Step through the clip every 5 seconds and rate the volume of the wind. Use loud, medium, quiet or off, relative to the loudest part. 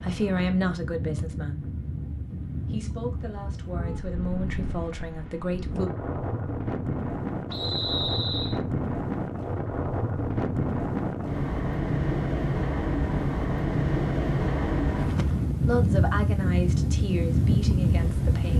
medium, medium, loud, loud.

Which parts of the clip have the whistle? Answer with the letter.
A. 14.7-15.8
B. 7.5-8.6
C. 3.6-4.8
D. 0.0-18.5
B.